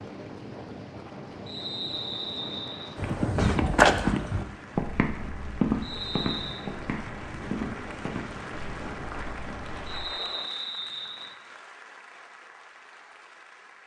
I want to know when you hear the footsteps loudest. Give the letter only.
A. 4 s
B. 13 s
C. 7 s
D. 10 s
A.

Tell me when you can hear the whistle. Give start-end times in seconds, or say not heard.
1.4-3.0, 5.8-6.7, 9.8-11.3.